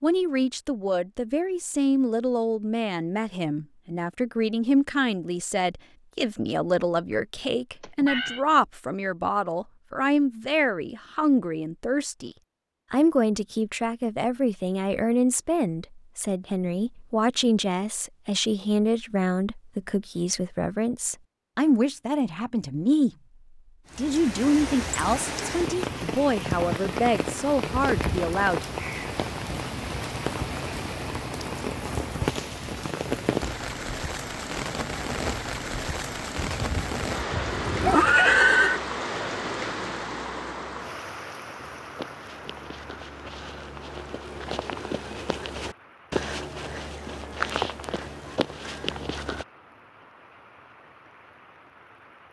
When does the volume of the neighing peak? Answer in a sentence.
The volume of the neighing peaks at 38 seconds.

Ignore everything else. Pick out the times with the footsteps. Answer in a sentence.
The footsteps can be heard from 41.6 to 49.5 s.